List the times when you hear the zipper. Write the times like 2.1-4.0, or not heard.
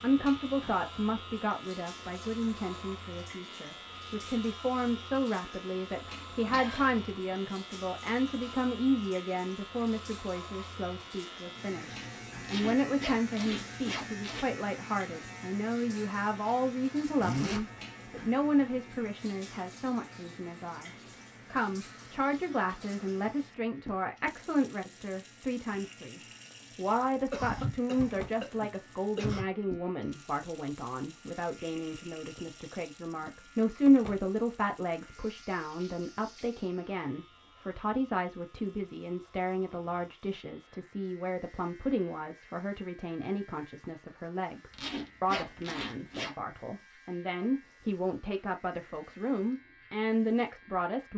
12.4-14.4, 17.1-17.6, 44.7-46.4.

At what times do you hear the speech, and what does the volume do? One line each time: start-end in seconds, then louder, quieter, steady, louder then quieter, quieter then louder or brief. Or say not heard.
0.0-51.1 steady.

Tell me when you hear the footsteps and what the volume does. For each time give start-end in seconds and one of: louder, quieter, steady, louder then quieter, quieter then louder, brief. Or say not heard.
not heard.